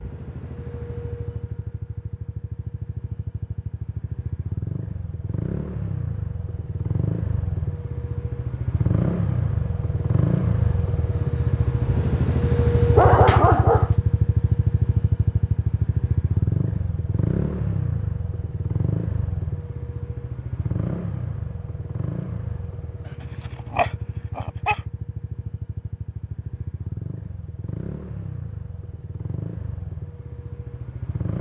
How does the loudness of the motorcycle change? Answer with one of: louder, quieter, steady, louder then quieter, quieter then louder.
louder then quieter.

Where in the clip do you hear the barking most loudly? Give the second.
13 s.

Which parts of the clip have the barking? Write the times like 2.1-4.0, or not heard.
12.9-13.9, 23.2-24.8.